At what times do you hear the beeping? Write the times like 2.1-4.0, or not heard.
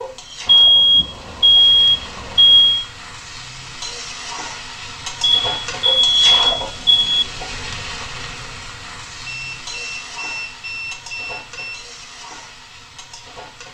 0.5-2.9, 5.2-7.2, 9.2-11.8.